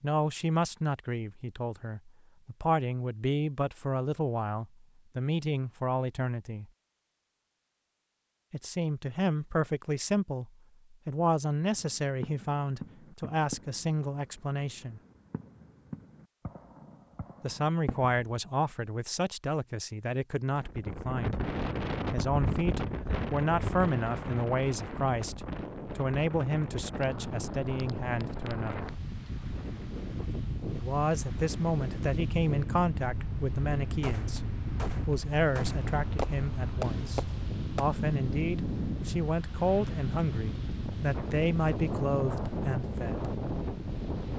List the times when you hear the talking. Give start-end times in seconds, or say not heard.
0.0-6.7, 8.5-15.0, 17.4-21.4, 22.1-28.9, 30.7-43.3.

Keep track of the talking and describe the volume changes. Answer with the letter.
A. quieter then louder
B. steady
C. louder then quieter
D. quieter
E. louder
B.